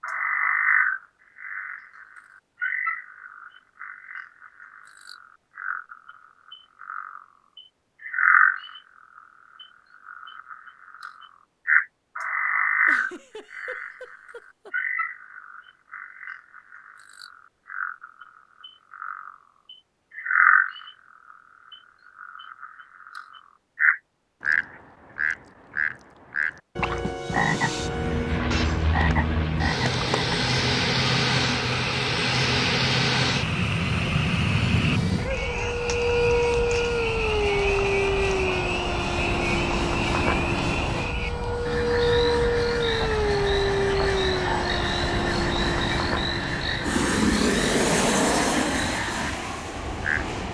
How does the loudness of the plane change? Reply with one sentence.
The loudness of the plane stays about the same.